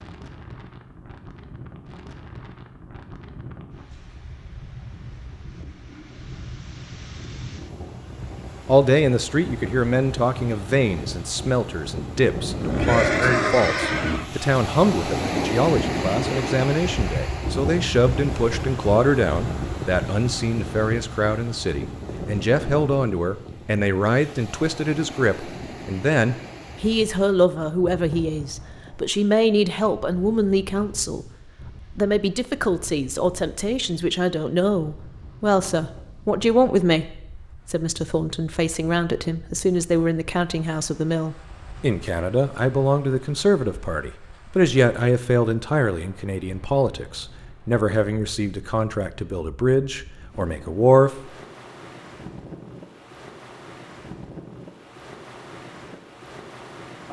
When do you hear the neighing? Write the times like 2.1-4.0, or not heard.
12.6-14.2.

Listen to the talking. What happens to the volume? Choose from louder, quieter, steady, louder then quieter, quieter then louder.
steady.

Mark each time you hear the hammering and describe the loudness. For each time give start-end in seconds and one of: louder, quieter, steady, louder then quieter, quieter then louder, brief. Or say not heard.
not heard.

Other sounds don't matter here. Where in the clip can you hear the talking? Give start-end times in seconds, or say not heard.
8.7-31.2, 31.9-51.2.